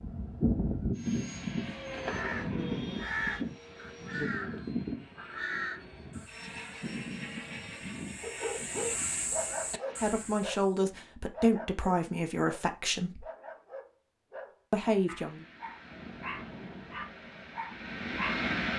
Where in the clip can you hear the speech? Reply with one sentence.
The speech can be heard from 10.0 to 13.2 s and from 14.7 to 15.4 s.